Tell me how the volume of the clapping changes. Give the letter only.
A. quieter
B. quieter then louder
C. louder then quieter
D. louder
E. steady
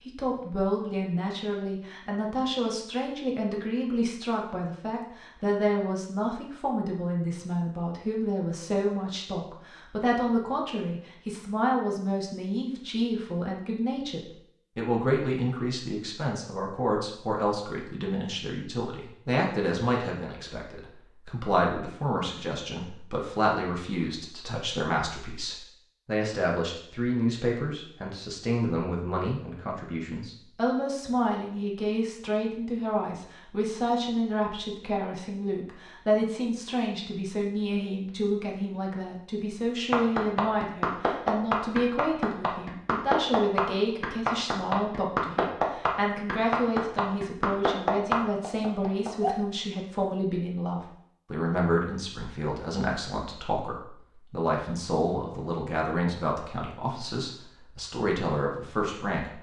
E.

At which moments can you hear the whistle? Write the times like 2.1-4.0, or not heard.
not heard.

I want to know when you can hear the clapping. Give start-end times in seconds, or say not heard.
39.9-49.4.